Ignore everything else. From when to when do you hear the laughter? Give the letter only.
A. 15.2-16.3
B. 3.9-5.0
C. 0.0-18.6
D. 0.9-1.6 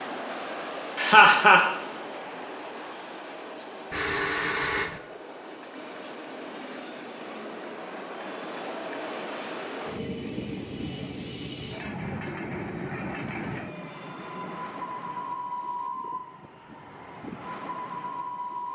D.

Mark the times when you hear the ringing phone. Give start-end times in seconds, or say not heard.
3.9-5.0.